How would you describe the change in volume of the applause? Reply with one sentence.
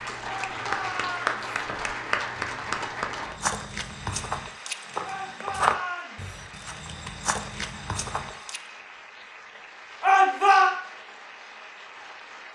The loudness of the applause goes down.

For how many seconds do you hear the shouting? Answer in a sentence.
You can hear the shouting for 3 seconds altogether.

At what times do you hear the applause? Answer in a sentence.
You can hear the applause from 0.0 to 12.4 s.